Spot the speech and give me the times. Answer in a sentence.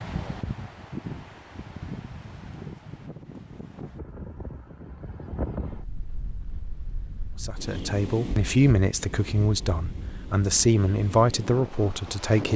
You can hear the speech from 7.4 to 12.5 s.